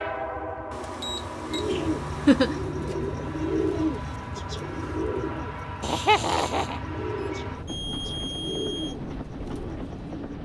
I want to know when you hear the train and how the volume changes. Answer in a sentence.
You can hear the train from 0.0 to 10.4 s, at a steady volume.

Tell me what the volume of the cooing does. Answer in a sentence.
The volume of the cooing goes down.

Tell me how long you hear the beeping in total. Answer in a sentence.
You can hear the beeping for 4 seconds altogether.